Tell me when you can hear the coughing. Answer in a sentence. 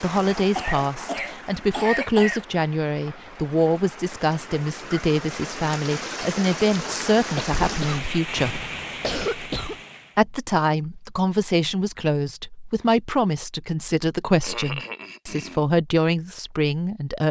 The coughing can be heard from 0.6 to 2.5 s, from 7.3 to 9.8 s and from 14.4 to 15.7 s.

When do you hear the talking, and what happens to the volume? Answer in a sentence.
You can hear the talking from 0.0 to 8.6 s, at a steady volume; and from 10.2 to 17.2 s, at a steady volume.